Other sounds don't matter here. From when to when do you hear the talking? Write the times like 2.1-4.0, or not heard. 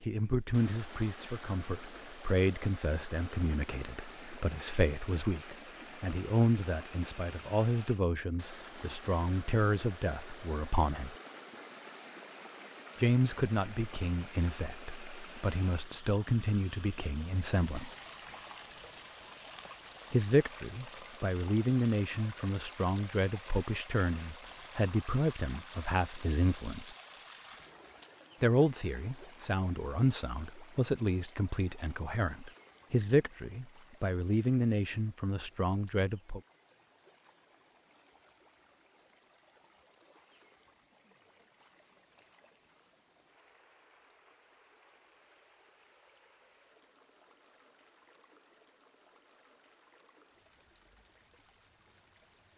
0.0-11.2, 12.9-17.9, 20.1-26.9, 28.4-36.4.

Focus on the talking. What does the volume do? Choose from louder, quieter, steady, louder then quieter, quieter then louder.
steady.